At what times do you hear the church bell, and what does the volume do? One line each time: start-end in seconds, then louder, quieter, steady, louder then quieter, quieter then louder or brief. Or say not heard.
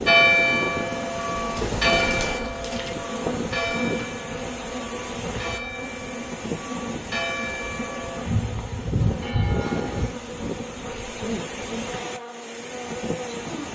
0.1-10.1 quieter then louder.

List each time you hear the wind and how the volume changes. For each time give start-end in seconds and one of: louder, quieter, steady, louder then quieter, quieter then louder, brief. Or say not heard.
0.0-13.7 steady.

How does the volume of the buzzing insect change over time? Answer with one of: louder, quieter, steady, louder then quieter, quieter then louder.
steady.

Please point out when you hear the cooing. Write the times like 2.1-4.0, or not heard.
1.4-3.0.